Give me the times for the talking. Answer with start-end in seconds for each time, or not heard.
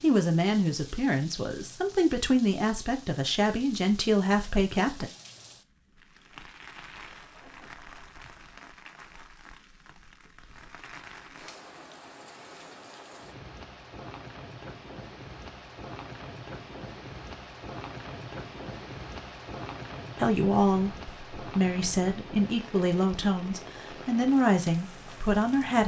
0.0-5.1, 20.1-25.8.